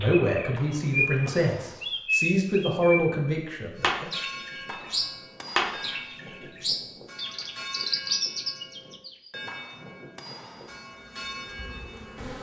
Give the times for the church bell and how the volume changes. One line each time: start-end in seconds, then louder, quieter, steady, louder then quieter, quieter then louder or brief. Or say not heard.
3.8-12.3 steady.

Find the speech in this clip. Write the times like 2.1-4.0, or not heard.
0.0-4.1.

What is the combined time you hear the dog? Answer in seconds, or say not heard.
not heard.